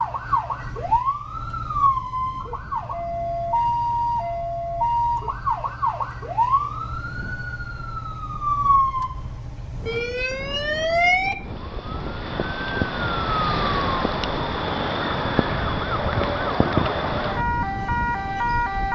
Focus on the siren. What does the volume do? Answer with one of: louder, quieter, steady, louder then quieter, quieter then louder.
steady.